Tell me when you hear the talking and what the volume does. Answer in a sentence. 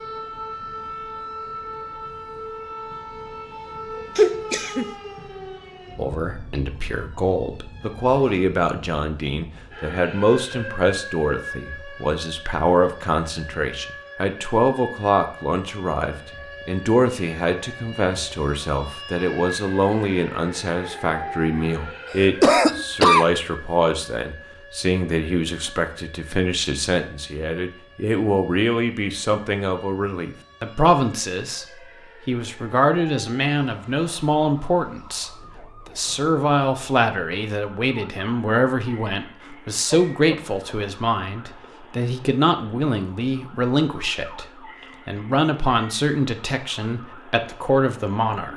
You can hear the talking from 6.0 to 48.5 s, at a steady volume.